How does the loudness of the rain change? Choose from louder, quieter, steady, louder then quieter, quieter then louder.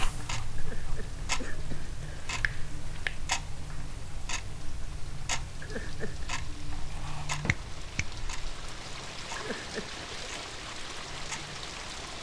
louder.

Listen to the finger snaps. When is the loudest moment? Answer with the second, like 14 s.
3 s.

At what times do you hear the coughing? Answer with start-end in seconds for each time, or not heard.
0.6-2.5, 5.6-6.3, 9.3-10.1.